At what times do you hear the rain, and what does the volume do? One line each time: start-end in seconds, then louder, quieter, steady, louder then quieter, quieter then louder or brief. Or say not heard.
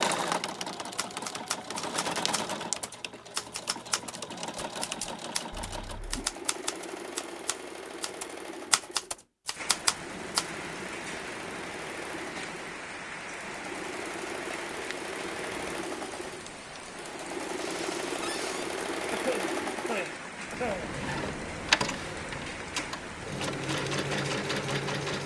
9.5-25.2 steady.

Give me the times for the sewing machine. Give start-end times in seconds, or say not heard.
0.0-25.2.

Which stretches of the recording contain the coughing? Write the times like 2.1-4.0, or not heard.
5.7-6.3, 19.1-20.9.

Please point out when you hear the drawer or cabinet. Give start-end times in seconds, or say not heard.
18.2-18.7.